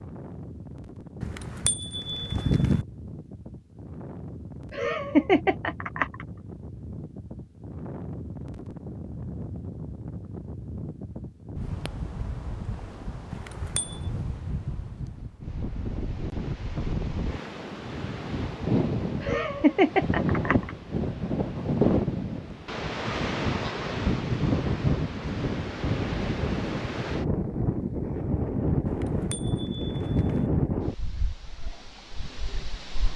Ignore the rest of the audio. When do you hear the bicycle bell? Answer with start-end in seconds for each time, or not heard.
1.2-2.9, 13.3-14.0, 28.9-30.5.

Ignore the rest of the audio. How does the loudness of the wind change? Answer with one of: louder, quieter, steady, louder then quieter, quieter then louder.
louder.